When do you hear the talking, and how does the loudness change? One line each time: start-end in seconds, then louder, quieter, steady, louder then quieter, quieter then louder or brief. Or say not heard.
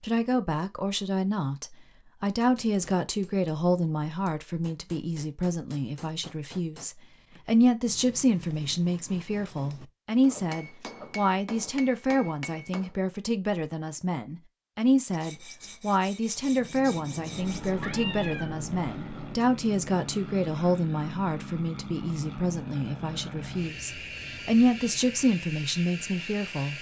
0.0-26.7 steady.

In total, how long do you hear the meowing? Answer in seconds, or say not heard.
2 s.